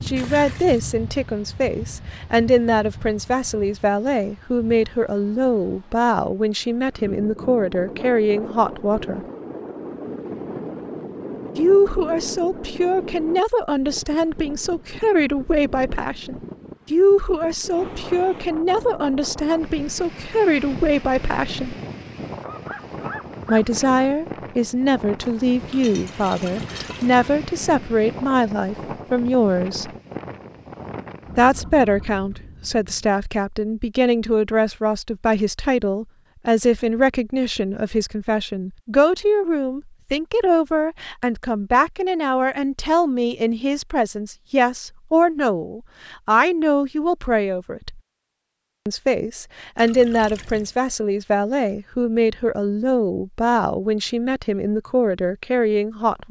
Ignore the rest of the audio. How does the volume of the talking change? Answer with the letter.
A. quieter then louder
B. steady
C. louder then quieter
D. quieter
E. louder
B.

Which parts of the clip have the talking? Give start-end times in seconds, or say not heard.
0.0-9.2, 11.6-21.8, 23.4-29.9, 31.4-48.0, 48.9-56.2.